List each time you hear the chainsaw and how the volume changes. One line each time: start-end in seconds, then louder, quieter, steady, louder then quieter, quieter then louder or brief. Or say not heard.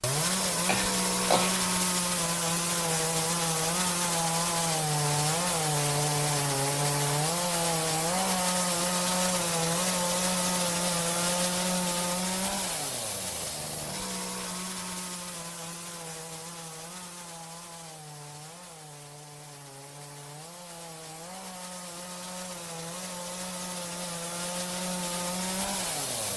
0.0-26.3 quieter then louder.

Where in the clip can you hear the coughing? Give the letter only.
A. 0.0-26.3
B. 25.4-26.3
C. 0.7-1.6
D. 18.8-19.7
C.